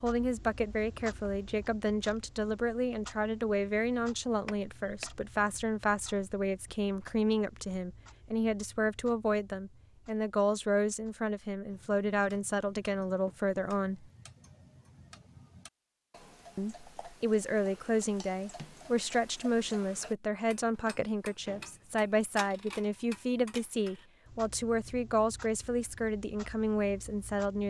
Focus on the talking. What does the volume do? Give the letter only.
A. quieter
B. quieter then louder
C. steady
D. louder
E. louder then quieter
C.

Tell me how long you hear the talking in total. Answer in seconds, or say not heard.
25 s.